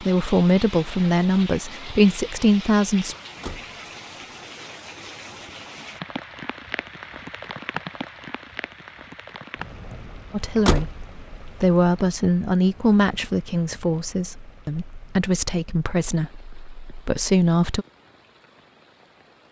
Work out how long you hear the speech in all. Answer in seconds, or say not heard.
11 s.